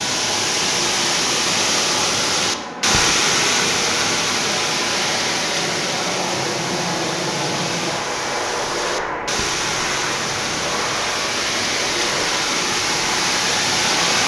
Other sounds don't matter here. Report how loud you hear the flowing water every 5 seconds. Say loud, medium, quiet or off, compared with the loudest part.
loud, medium, loud.